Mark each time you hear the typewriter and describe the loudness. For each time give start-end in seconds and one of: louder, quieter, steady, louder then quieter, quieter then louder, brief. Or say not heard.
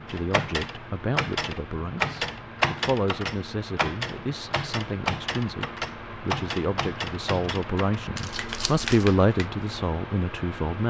0.1-9.5 quieter.